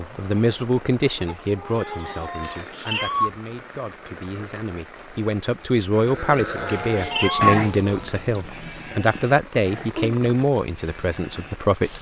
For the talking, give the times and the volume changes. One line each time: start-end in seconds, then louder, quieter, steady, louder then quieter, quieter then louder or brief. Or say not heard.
0.0-11.9 quieter then louder.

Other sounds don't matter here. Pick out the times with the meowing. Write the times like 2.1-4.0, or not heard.
2.4-3.3, 6.7-7.6.